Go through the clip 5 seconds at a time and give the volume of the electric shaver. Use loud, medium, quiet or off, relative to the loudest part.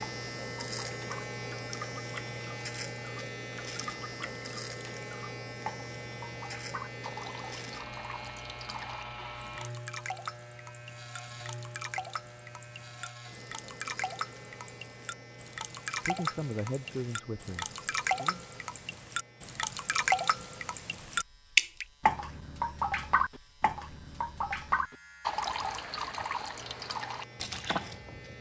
loud, loud, medium, quiet, quiet, medium.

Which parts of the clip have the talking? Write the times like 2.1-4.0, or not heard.
16.0-18.4.